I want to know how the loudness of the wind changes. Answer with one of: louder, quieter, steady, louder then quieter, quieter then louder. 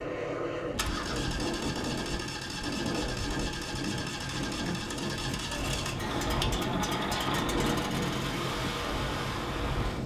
steady.